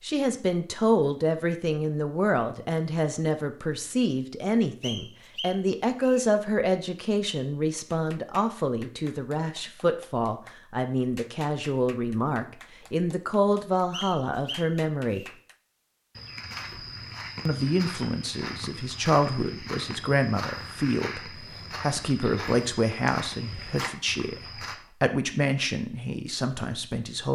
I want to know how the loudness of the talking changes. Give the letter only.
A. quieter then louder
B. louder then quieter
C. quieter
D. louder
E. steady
E.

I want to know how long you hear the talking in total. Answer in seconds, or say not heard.
25 s.